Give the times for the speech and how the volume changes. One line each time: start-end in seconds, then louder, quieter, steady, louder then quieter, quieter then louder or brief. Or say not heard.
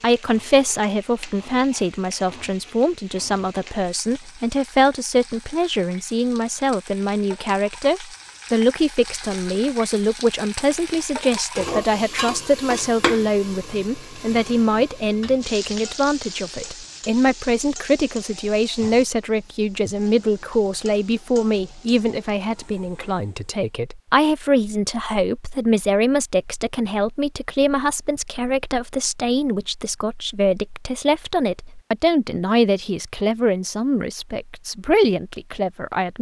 0.0-36.1 steady.